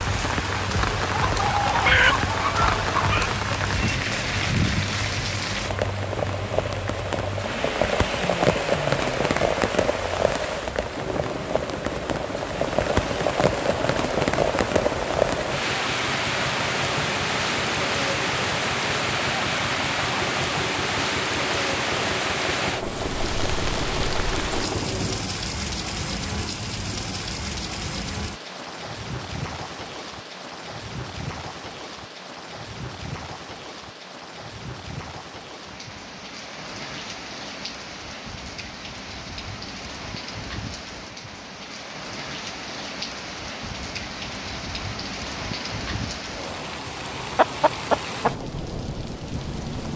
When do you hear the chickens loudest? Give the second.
2 s.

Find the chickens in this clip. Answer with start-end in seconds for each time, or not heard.
1.1-3.3, 47.4-48.3.